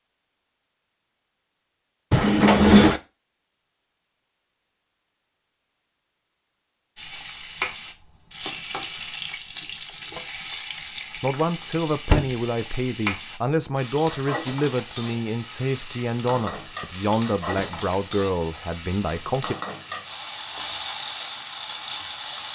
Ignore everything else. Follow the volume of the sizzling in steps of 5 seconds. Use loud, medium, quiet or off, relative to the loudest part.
off, loud, loud, loud, loud.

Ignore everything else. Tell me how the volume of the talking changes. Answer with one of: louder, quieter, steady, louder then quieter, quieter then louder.
steady.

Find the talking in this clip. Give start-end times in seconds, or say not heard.
11.2-19.6.